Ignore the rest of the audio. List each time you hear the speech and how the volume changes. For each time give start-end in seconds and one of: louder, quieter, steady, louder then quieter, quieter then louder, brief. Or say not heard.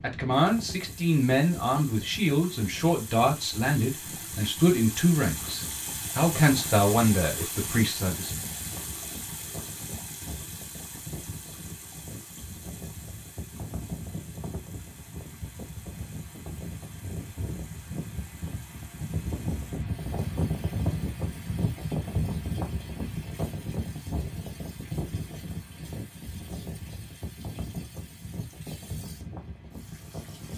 0.0-8.3 steady.